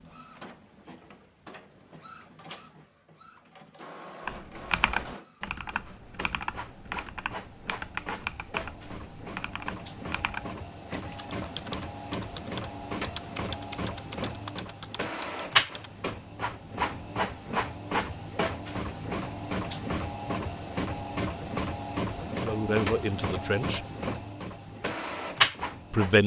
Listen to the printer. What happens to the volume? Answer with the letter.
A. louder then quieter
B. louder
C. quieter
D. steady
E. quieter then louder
B.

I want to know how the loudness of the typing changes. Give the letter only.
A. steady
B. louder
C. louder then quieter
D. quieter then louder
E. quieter
E.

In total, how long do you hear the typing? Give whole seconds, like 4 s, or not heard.
12 s.